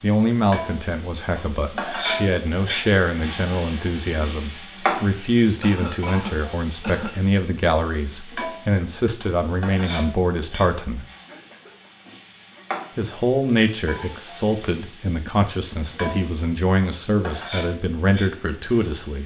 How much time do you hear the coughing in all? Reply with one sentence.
You can hear the coughing for 3 seconds altogether.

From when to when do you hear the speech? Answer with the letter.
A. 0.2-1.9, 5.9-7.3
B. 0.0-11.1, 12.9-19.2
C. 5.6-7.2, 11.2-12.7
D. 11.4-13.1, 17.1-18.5
B.